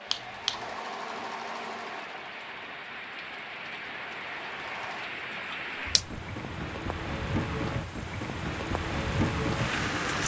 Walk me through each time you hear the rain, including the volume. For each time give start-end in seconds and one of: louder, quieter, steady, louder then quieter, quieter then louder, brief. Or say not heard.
0.0-10.2 louder.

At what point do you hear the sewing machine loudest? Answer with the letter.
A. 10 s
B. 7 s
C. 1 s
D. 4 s
C.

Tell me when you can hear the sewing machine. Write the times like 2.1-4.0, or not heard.
0.0-5.1.